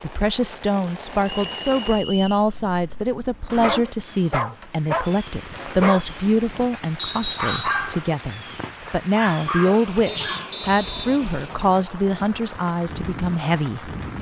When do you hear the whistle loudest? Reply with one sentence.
The volume of the whistle peaks at 7 seconds.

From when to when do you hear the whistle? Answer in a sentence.
The whistle can be heard from 1.2 to 2.5 s, from 7.0 to 7.8 s and from 10.1 to 11.8 s.